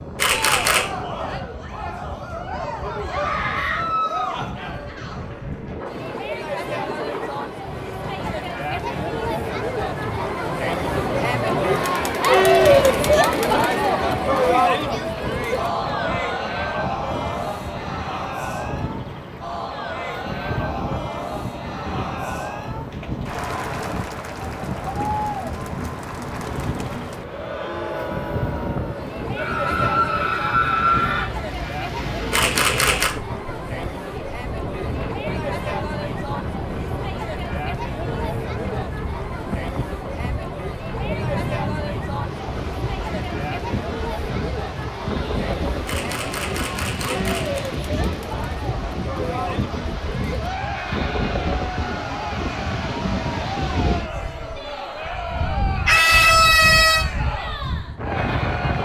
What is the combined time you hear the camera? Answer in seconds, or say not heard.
3 s.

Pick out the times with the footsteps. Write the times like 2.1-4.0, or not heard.
not heard.